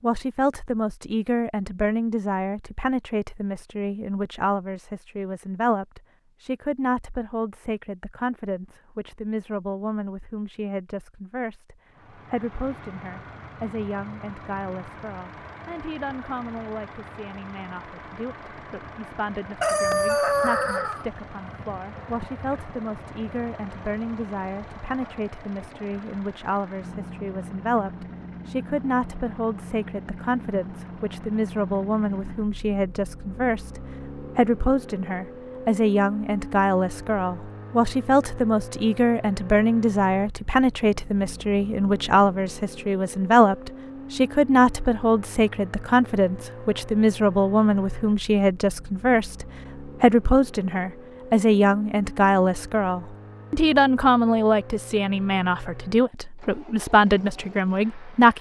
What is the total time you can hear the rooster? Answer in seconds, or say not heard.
2 s.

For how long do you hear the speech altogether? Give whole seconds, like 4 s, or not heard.
58 s.